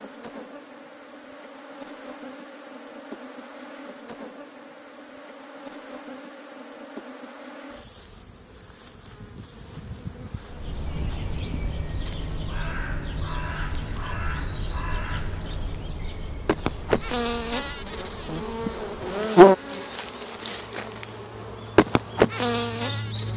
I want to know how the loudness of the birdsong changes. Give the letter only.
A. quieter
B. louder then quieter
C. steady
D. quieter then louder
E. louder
D.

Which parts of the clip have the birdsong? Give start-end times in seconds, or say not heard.
10.4-23.3.